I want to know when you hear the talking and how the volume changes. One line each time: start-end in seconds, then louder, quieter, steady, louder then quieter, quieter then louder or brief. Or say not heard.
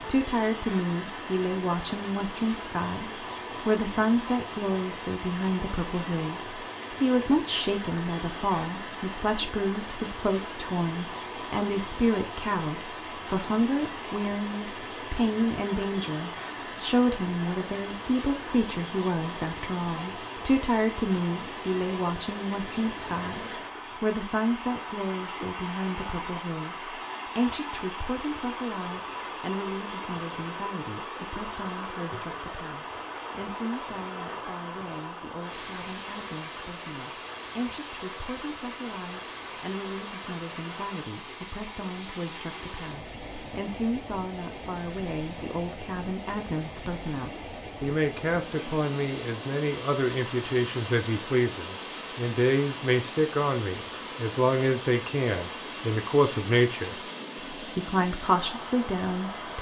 0.0-59.5 quieter then louder.